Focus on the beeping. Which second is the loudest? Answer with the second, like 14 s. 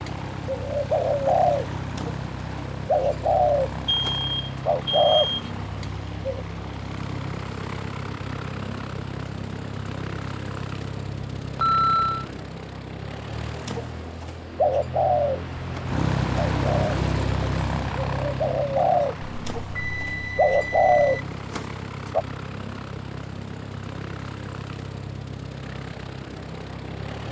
12 s.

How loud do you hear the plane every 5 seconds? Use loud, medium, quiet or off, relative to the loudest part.
medium, medium, medium, loud, medium, medium.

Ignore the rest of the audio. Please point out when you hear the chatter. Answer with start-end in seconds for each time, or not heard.
not heard.